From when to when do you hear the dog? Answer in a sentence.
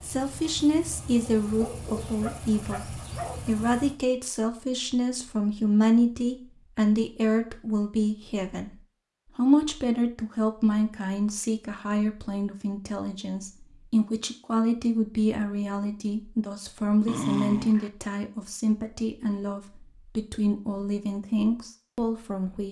You can hear the dog from 1.4 to 3.5 s and from 17.1 to 17.9 s.